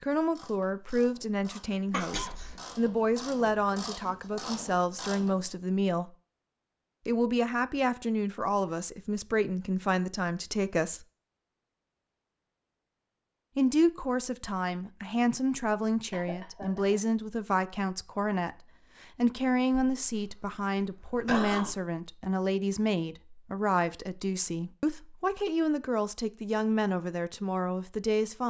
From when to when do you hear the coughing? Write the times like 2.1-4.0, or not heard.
1.9-2.5, 16.1-17.0, 19.7-21.8.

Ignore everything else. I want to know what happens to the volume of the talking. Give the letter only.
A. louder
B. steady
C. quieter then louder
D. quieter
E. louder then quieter
B.